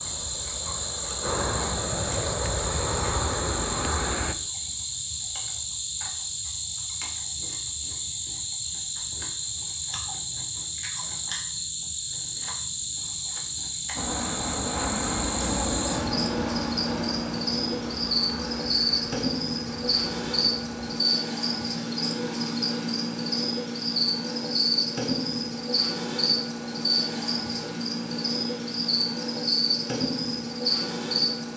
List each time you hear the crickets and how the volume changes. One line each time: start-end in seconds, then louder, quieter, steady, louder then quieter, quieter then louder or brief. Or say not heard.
0.0-31.5 steady.